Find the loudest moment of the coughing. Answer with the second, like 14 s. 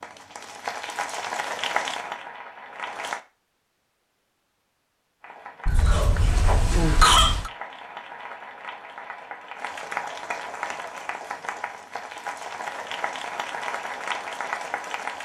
7 s.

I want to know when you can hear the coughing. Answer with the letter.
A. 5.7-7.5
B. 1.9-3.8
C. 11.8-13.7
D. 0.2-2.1
A.